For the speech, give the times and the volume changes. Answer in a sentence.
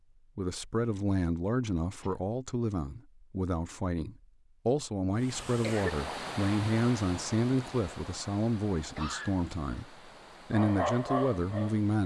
You can hear the speech from 0.3 to 12.0 s, at a steady volume.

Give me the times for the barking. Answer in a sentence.
The barking can be heard from 10.5 to 11.9 s.